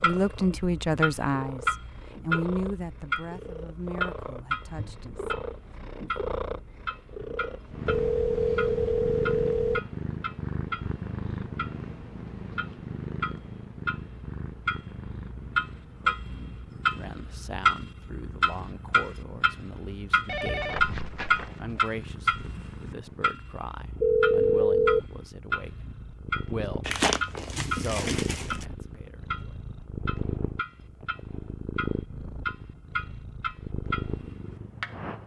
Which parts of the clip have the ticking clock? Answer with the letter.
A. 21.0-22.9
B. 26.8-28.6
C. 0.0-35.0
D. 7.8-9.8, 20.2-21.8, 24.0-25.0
C.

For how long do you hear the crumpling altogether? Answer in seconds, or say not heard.
2 s.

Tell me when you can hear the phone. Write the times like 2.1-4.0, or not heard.
7.8-9.8, 20.2-21.8, 24.0-25.0.